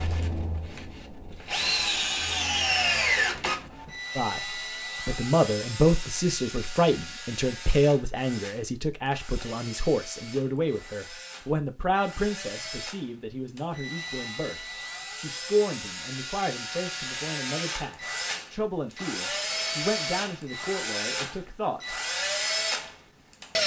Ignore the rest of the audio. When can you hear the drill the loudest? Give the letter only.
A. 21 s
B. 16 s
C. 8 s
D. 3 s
D.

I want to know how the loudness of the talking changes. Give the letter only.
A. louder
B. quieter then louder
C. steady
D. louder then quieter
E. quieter
E.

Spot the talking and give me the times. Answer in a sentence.
You can hear the talking from 4.2 to 21.9 s.